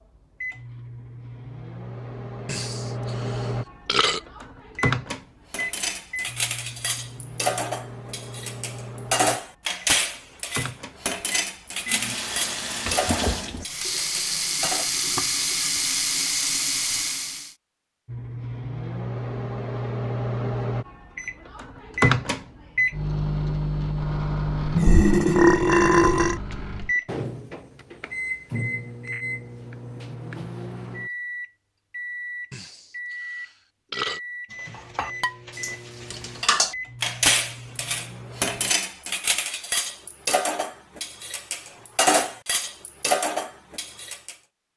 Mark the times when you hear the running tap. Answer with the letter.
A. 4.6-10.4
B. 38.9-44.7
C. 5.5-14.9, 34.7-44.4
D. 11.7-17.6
D.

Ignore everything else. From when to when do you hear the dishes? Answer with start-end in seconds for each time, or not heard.
5.5-14.9, 34.7-44.4.